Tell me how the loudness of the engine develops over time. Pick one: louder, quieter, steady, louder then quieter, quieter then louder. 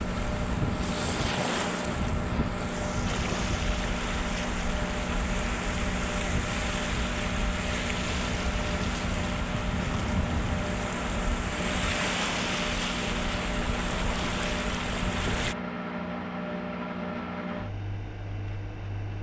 steady.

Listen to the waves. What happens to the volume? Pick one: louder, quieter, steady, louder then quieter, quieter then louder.
steady.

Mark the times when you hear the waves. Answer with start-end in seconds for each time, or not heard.
0.0-15.6.